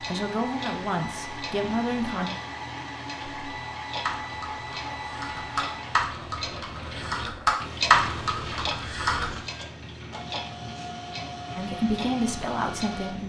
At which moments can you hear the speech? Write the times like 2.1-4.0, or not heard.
0.0-2.3, 11.6-13.2.